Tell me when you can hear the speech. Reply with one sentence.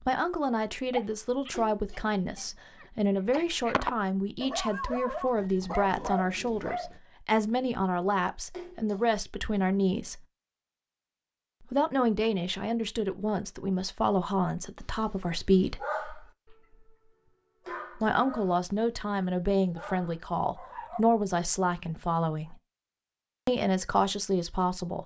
The speech can be heard from 0.1 to 10.2 s, from 11.7 to 15.8 s, from 17.9 to 22.6 s and from 23.4 to 25.0 s.